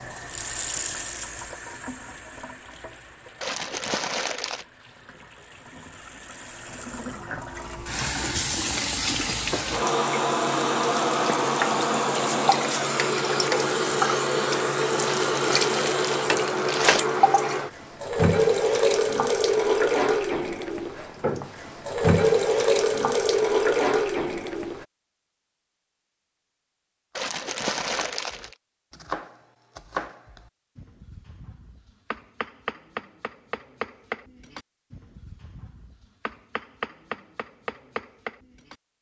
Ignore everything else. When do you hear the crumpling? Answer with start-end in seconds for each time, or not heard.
3.4-4.7, 15.0-17.0, 27.1-28.6.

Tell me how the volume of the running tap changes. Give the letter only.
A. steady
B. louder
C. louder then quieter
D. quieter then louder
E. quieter
B.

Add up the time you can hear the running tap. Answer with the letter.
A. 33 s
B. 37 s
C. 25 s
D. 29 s
C.